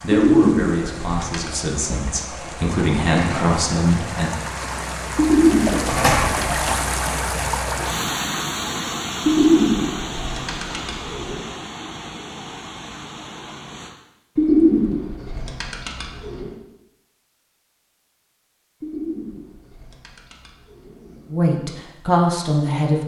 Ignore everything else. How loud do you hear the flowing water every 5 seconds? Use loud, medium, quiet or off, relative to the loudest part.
medium, loud, medium, off, off.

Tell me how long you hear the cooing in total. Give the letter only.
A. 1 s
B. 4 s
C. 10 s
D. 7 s
C.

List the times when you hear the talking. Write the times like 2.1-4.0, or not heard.
0.0-4.3, 21.3-23.0.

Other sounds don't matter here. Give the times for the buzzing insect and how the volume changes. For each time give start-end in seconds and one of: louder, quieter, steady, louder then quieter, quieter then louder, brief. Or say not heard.
not heard.